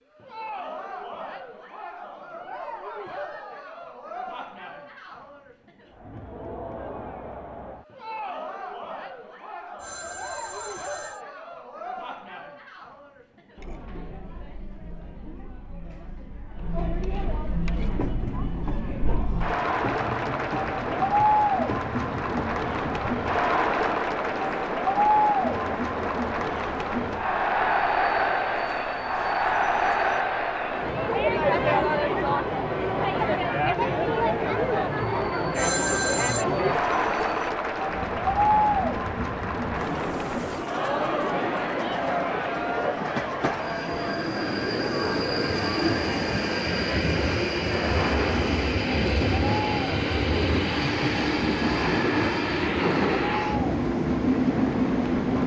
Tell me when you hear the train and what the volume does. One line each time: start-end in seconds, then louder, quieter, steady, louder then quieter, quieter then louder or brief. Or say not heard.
17.7-55.4 louder.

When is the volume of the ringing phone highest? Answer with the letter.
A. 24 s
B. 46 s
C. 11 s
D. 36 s
D.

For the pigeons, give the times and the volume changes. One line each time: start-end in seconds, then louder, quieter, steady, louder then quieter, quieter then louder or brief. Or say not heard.
not heard.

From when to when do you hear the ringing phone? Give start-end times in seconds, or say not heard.
9.8-11.2, 35.5-36.5.